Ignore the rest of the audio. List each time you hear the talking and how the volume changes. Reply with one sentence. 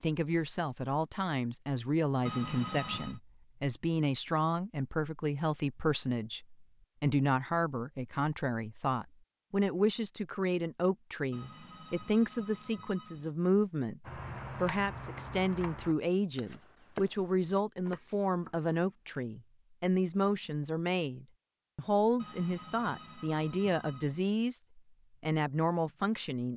You can hear the talking from 0.0 to 26.5 s, at a steady volume.